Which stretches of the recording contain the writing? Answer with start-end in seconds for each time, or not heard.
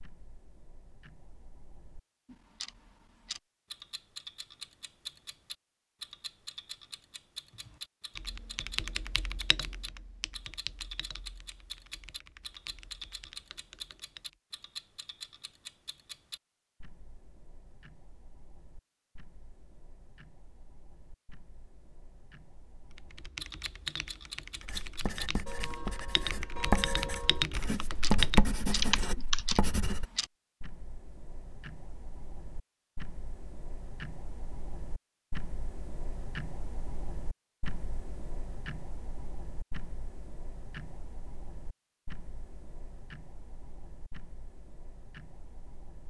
24.6-30.1.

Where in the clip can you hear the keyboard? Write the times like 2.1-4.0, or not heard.
7.5-14.3, 22.9-29.6.